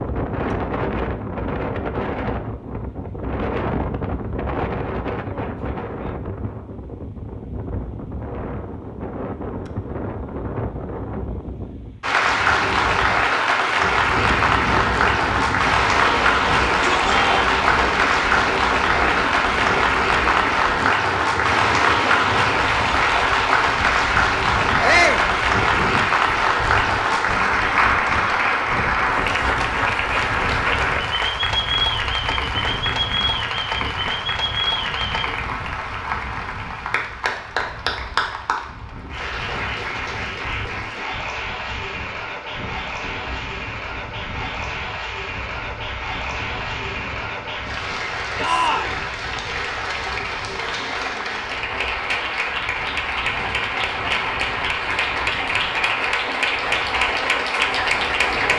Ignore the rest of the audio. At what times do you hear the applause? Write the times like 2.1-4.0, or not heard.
12.0-58.5.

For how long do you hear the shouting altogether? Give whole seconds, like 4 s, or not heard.
2 s.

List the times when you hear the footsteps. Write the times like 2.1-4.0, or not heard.
not heard.